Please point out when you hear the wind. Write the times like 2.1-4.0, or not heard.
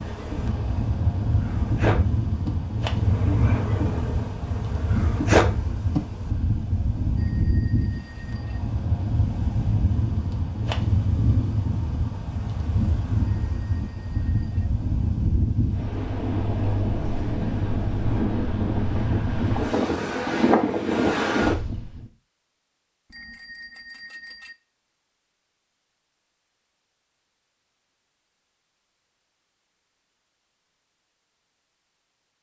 0.0-22.1.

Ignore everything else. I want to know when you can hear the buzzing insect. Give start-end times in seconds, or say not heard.
0.0-6.0.